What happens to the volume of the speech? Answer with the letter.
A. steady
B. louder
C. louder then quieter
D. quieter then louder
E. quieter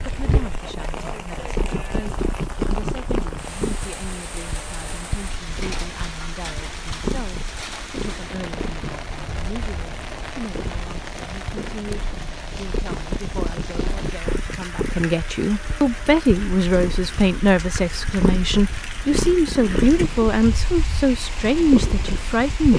B.